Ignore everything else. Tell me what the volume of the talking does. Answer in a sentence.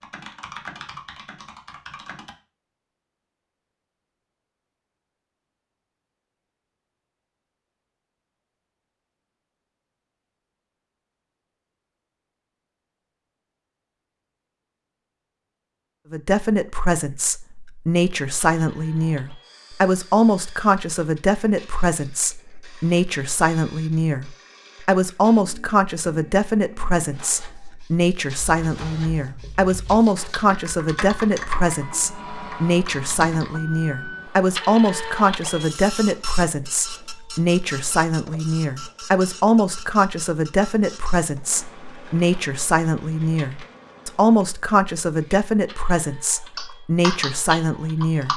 The volume of the talking stays about the same.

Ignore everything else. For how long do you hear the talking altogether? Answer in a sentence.
The talking can be heard for 32 seconds in total.